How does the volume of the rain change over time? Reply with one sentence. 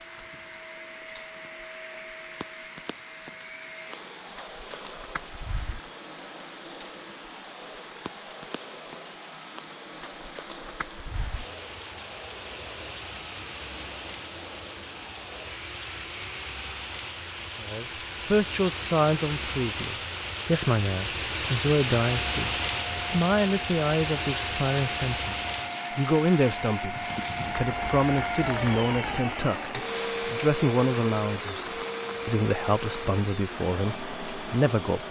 The volume of the rain goes up, then down.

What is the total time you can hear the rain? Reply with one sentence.
You can hear the rain for 35 seconds altogether.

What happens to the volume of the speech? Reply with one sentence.
The volume of the speech stays about the same.